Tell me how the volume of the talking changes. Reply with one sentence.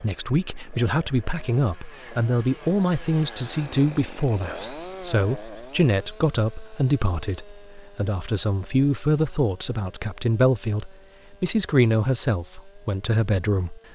The loudness of the talking stays about the same.